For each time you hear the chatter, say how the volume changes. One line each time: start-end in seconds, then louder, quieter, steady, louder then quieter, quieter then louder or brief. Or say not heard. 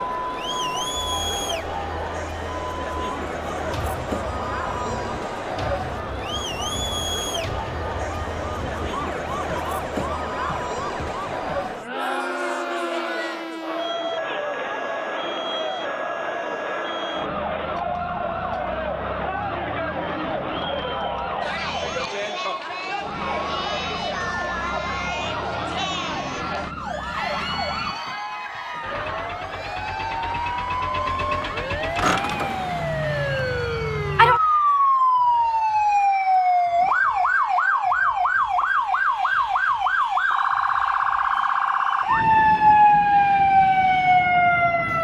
0.0-44.9 quieter.